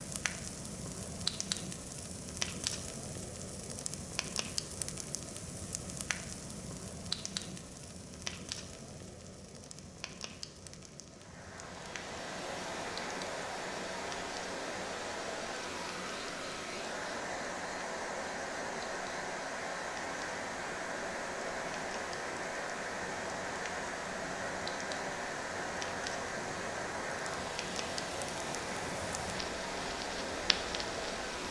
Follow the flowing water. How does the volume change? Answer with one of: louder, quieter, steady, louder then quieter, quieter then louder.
steady.